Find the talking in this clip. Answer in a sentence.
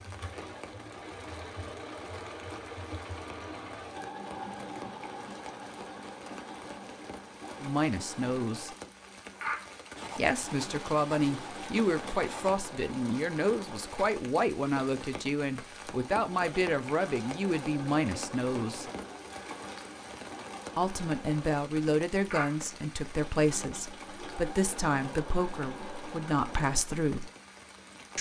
The talking can be heard from 7.6 to 8.7 s, from 10.2 to 18.9 s and from 20.8 to 27.3 s.